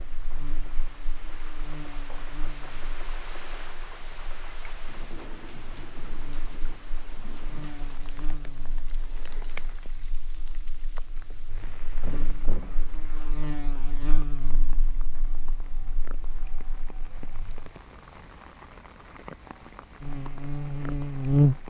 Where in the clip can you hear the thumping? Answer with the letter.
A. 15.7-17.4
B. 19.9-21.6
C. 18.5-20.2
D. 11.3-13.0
D.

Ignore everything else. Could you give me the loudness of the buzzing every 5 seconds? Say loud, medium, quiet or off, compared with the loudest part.
quiet, quiet, quiet, quiet, loud.